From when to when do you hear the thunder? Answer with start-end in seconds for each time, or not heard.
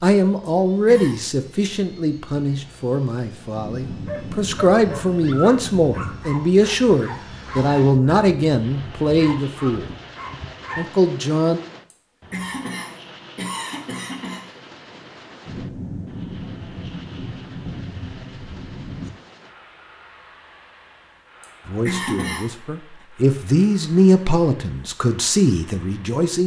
3.5-6.0, 15.4-19.1.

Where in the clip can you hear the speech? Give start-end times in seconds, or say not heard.
0.0-9.8, 10.8-11.6, 21.6-26.4.